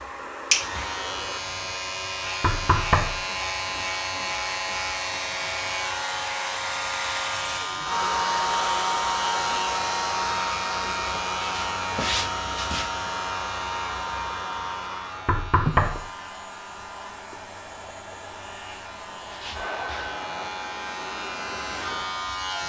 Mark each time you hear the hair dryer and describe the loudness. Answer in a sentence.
The hair dryer can be heard from 0.0 to 22.6 s, getting louder then quieter.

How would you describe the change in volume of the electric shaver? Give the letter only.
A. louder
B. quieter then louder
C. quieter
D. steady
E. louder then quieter
C.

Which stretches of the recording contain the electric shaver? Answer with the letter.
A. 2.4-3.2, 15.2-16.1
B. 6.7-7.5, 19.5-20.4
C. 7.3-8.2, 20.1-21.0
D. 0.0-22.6
D.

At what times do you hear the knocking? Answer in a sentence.
The knocking can be heard from 2.4 to 3.2 s and from 15.2 to 16.1 s.